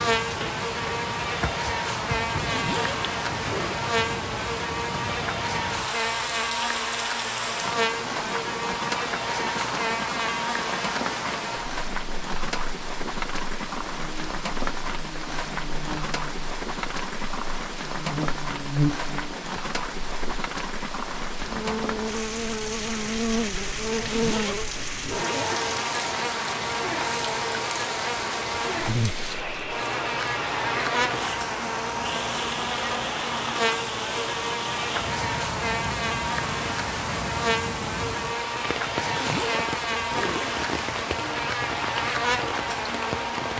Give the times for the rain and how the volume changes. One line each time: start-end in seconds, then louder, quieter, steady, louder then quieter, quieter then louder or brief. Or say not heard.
0.0-43.5 steady.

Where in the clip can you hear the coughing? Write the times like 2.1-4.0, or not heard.
not heard.